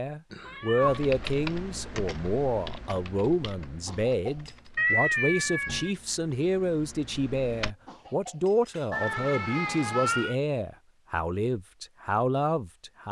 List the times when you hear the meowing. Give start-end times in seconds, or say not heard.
0.3-1.1, 4.8-6.0, 8.9-10.3.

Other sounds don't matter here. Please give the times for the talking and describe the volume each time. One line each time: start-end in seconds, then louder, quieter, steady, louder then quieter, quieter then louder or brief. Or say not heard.
0.0-13.0 steady.